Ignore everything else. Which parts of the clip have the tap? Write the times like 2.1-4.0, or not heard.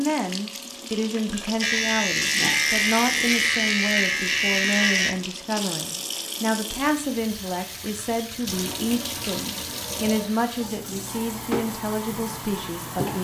0.0-13.1.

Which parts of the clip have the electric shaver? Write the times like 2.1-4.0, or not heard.
1.6-5.2.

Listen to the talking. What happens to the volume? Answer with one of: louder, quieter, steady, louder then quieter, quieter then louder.
steady.